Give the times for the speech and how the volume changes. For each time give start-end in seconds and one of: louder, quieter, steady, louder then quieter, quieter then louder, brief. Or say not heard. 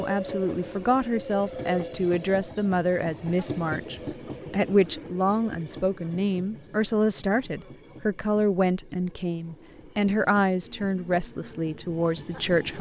0.0-12.7 steady.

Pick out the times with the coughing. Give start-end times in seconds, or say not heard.
not heard.